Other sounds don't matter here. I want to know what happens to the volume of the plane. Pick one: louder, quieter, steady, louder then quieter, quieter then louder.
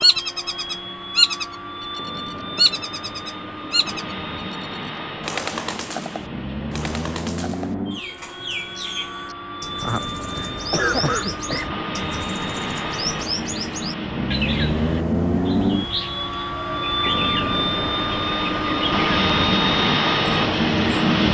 louder.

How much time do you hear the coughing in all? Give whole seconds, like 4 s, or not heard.
2 s.